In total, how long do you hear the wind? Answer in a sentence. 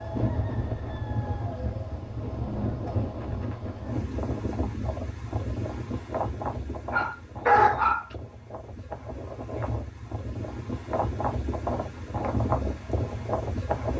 The wind can be heard for 14 seconds in total.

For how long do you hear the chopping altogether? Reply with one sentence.
You can't hear the chopping here.